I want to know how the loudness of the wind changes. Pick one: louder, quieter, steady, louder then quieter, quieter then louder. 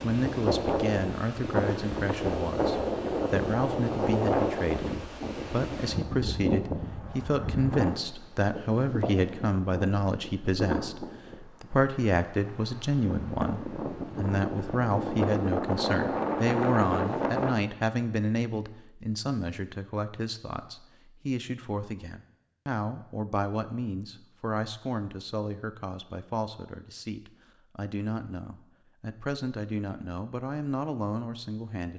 quieter then louder.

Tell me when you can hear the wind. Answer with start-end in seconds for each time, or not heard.
0.0-17.6.